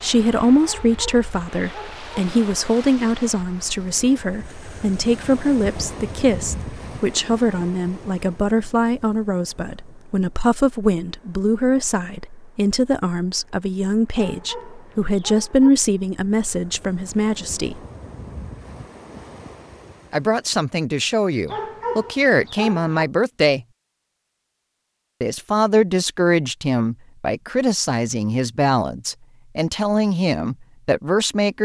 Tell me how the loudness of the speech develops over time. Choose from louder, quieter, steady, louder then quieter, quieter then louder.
steady.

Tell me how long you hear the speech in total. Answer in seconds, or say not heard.
28 s.